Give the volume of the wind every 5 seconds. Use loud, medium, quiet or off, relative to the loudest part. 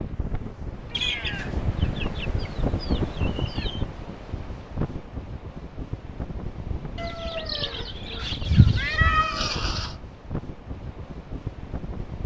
loud, medium, medium.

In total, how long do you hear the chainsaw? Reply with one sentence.
The chainsaw can't be heard in this clip.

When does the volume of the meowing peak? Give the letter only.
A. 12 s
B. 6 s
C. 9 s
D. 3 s
C.